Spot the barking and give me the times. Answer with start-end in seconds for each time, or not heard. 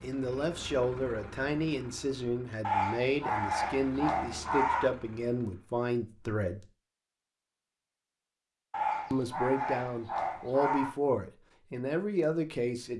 2.6-5.0, 8.7-10.9.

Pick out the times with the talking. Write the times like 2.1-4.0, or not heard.
0.0-6.7, 9.1-12.9.